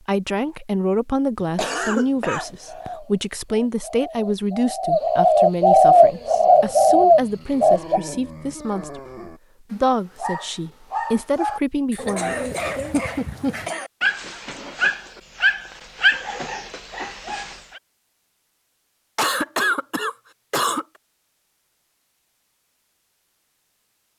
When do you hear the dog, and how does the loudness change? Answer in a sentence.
You can hear the dog from 6.0 to 17.8 s, getting louder.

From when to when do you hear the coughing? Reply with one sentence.
The coughing can be heard from 1.4 to 2.9 s, from 11.9 to 13.9 s and from 19.1 to 20.9 s.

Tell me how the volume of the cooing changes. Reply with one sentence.
The loudness of the cooing goes up.